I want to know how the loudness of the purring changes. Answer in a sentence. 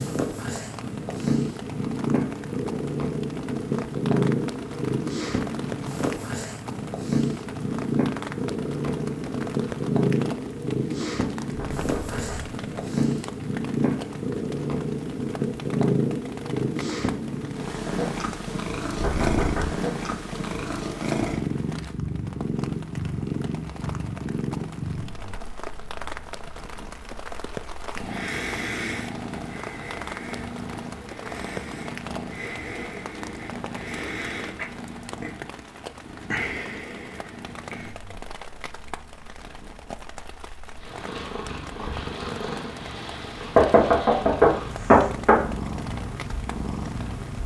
The loudness of the purring goes down.